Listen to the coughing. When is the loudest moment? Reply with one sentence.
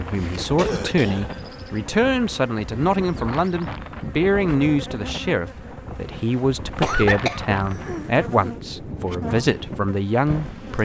The loudest moment of the coughing is at 7 seconds.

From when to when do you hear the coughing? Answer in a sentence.
The coughing can be heard from 0.6 to 1.2 s and from 6.8 to 8.1 s.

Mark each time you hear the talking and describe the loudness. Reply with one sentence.
You can hear the talking from 0.0 to 10.7 s, at a steady volume.